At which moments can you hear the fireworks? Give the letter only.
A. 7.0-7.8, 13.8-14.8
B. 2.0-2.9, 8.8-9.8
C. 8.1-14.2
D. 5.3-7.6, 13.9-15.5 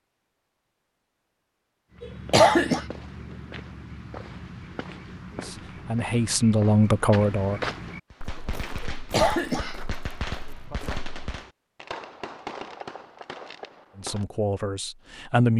C.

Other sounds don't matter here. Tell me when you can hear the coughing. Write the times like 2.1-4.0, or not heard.
2.0-2.9, 8.8-9.8.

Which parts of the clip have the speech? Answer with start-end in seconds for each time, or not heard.
5.3-7.6, 13.9-15.5.